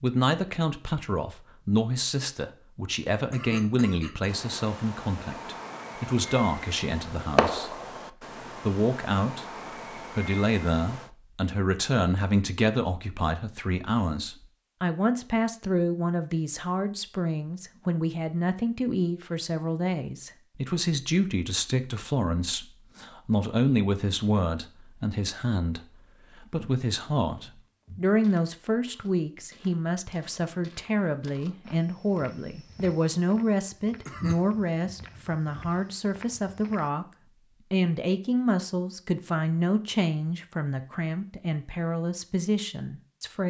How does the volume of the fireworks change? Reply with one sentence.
The volume of the fireworks goes up, then down.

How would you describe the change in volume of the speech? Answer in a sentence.
The loudness of the speech stays about the same.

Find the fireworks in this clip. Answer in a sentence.
The fireworks can be heard from 4.2 to 11.1 s.